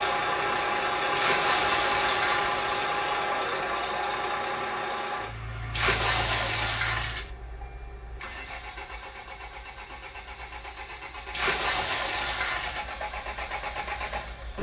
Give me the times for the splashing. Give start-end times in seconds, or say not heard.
1.1-2.7, 5.7-7.3, 11.3-12.9.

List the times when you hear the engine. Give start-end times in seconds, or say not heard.
0.0-14.5.